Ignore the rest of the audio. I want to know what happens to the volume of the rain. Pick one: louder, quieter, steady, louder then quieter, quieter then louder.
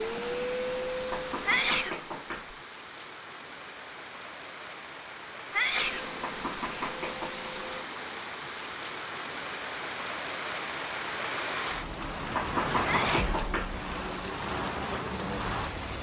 louder.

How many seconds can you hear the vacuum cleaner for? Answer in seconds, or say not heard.
4 s.